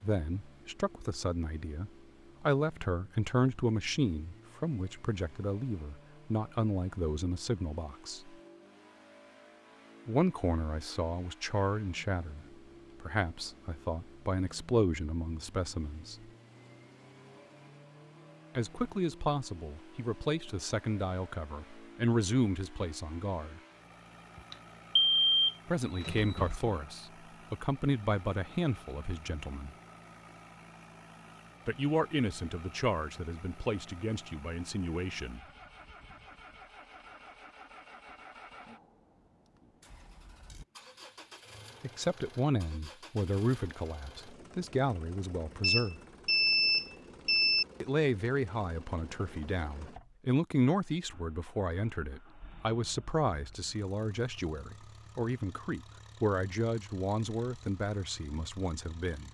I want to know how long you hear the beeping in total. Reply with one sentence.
The beeping can be heard for 4 seconds in total.